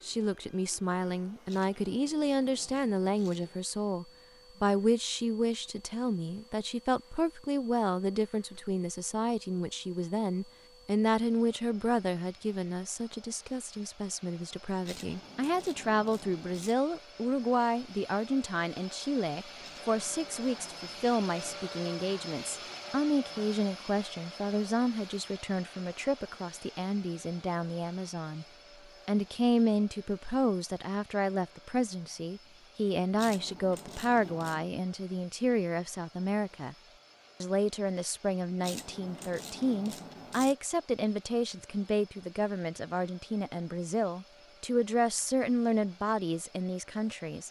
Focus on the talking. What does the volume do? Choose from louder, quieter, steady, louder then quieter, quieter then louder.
steady.